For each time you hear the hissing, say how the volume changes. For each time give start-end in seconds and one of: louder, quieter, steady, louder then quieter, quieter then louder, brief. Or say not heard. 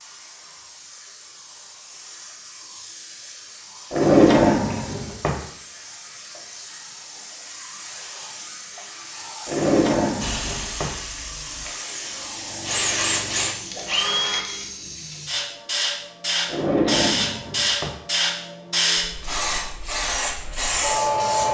0.0-21.4 louder.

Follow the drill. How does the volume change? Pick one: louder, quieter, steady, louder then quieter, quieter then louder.
louder.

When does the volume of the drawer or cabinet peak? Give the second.
4 s.